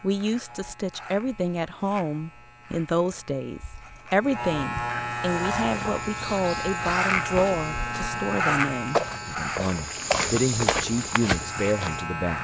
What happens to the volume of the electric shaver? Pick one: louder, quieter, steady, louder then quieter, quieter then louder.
louder then quieter.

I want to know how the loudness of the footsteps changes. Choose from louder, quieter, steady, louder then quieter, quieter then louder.
louder.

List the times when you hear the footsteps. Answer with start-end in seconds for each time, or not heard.
5.5-12.1.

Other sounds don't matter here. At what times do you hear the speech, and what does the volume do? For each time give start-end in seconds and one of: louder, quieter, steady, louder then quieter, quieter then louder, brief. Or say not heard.
0.0-12.4 steady.